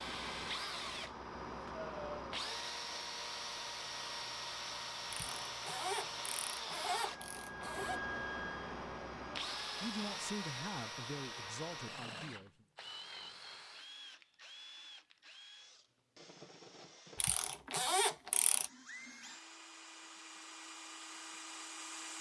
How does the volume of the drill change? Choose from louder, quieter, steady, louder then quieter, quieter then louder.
quieter.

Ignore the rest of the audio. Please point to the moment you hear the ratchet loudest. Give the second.
18 s.